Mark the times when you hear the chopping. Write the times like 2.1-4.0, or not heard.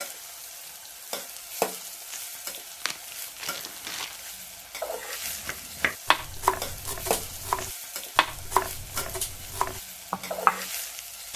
5.5-10.7.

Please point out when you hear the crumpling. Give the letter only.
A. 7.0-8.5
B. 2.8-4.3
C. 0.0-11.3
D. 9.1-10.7
B.